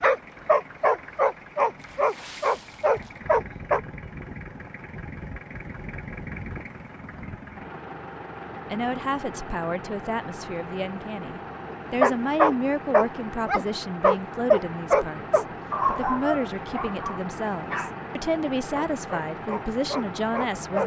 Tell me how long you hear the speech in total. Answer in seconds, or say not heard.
12 s.